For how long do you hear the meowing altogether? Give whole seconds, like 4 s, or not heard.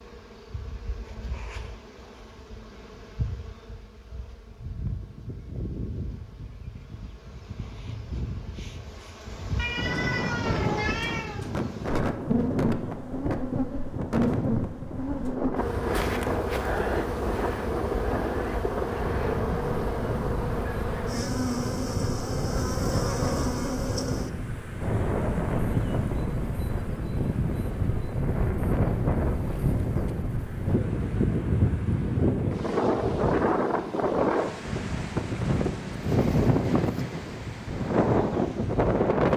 2 s.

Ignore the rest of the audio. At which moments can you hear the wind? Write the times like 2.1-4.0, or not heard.
9.8-39.3.